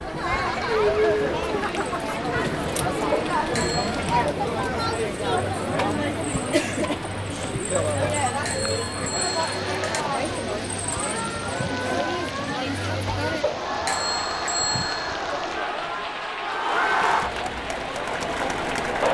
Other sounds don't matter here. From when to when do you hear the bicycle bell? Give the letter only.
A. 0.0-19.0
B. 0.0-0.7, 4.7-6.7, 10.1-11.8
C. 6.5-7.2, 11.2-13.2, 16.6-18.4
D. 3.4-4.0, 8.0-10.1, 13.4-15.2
D.